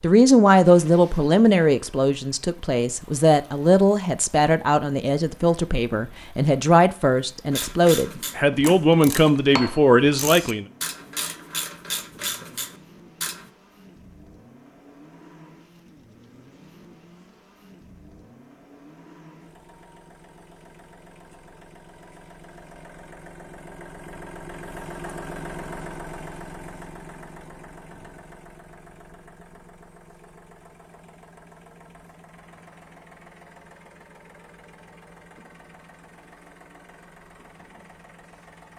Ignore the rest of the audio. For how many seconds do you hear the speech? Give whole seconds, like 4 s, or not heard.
11 s.